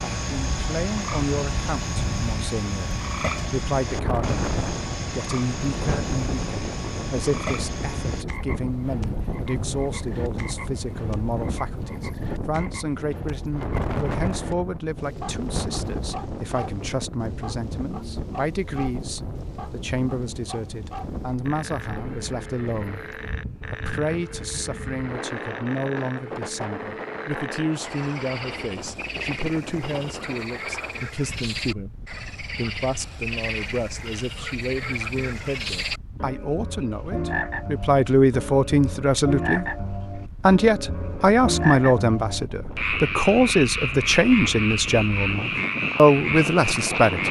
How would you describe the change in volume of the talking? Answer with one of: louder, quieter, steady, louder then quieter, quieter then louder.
louder.